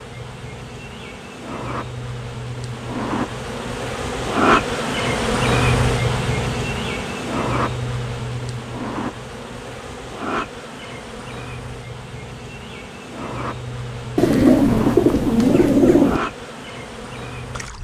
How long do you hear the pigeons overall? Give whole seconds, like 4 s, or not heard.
2 s.